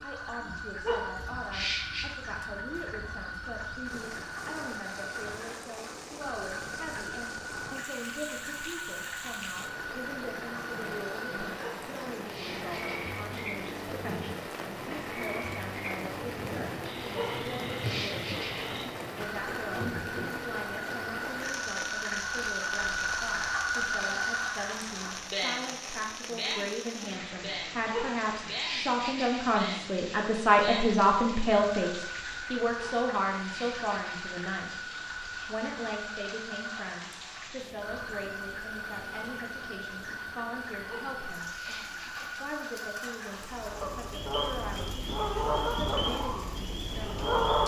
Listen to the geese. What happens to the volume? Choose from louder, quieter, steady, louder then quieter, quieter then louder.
louder then quieter.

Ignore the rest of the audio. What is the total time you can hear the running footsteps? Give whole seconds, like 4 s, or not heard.
not heard.